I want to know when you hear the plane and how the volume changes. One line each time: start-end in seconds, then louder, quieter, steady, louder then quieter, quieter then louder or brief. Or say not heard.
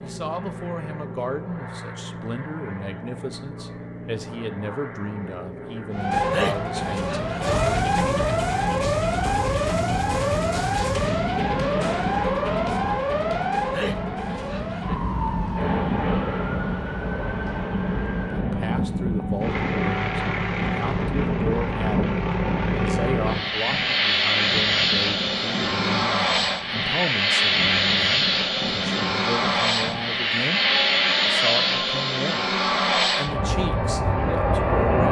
0.0-35.0 louder.